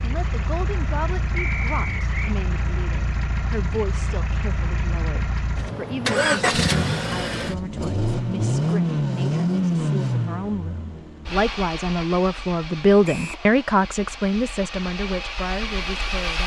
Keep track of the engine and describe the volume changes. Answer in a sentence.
The loudness of the engine goes up, then down.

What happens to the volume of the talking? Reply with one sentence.
The loudness of the talking goes up.